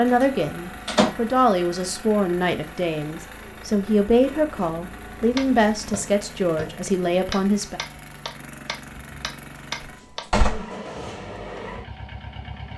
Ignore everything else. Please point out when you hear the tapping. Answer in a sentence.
The tapping can be heard from 5.3 to 10.2 s.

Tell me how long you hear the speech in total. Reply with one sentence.
You can hear the speech for 8 seconds altogether.